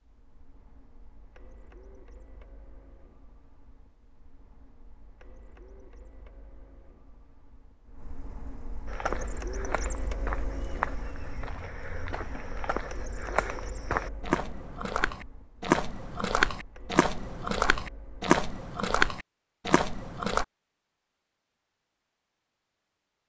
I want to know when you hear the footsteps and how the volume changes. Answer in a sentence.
The footsteps can be heard from 8.8 to 20.4 s, getting louder.